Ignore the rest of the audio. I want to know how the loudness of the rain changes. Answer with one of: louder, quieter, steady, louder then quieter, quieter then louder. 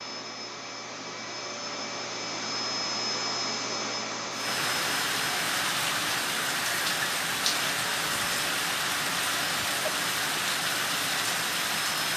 steady.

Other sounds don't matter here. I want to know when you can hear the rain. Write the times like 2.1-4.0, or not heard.
4.3-12.1.